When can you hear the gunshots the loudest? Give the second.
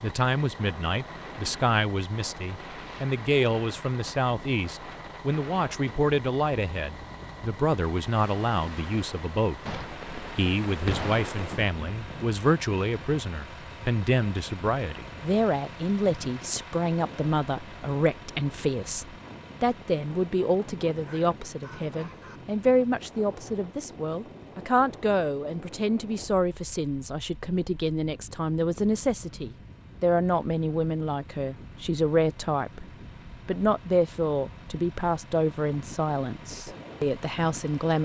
11 s.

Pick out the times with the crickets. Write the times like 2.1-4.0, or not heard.
not heard.